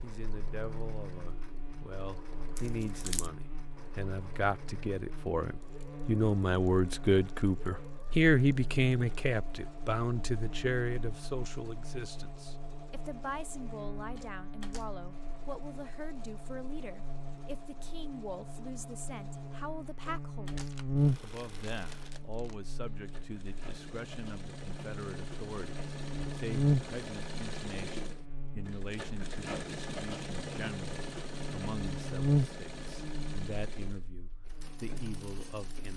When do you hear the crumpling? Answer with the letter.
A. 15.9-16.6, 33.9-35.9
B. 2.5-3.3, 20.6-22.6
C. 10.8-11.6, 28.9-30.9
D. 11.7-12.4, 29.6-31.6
B.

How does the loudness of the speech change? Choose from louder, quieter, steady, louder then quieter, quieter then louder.
quieter.